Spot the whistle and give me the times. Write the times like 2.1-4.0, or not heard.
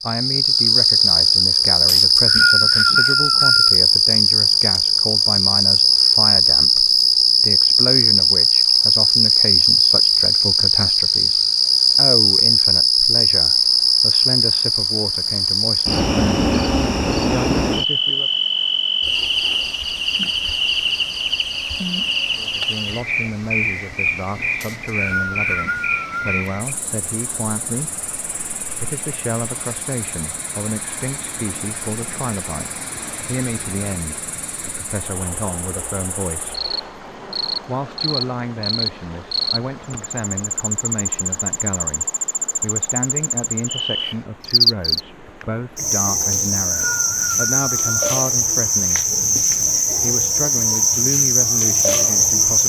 1.9-3.8, 24.6-26.4, 46.3-48.0.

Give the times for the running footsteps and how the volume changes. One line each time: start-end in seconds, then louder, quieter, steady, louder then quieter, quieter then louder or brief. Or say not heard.
not heard.